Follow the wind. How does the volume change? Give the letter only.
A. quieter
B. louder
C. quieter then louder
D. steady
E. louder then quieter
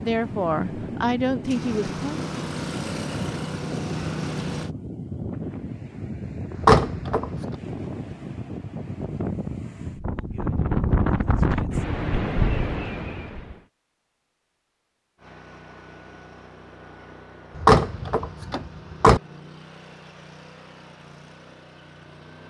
B.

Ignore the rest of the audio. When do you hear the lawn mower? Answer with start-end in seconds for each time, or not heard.
1.4-4.7, 15.2-22.4.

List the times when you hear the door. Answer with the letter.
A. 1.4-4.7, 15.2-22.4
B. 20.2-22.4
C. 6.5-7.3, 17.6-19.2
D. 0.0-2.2
C.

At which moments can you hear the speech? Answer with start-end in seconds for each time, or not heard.
0.0-2.2.